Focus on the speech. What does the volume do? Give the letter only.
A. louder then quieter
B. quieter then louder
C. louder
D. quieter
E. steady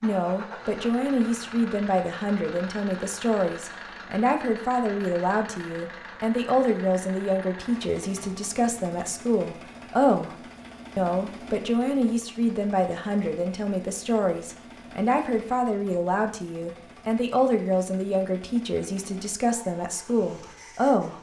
E.